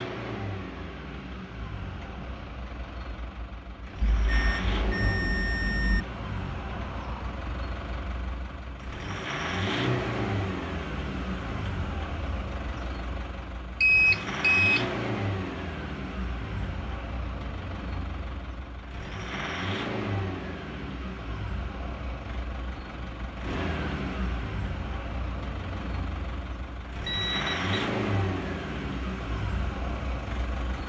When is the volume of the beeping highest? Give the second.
14 s.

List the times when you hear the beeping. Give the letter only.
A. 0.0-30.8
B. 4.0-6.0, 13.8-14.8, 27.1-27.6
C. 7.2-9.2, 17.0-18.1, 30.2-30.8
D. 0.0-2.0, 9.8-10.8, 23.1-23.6
B.